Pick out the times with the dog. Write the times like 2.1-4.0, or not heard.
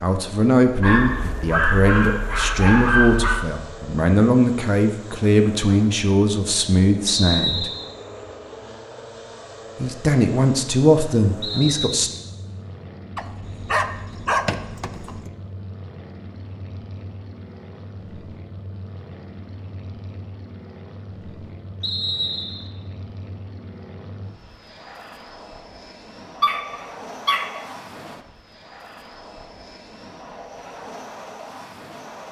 0.8-3.5, 13.2-15.3, 26.4-27.6.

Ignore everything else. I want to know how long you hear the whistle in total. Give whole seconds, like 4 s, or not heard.
3 s.